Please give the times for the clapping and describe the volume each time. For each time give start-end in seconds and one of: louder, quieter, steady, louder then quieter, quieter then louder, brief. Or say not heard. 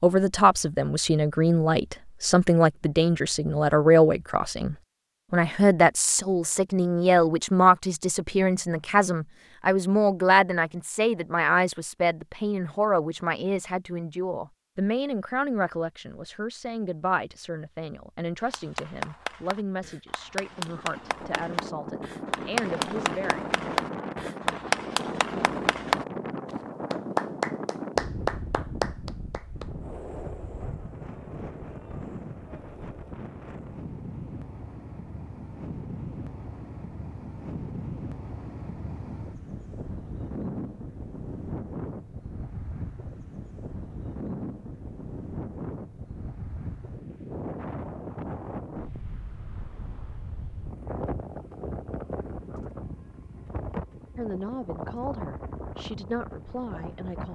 18.4-29.6 louder.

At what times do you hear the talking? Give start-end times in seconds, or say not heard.
0.0-23.4, 54.1-57.3.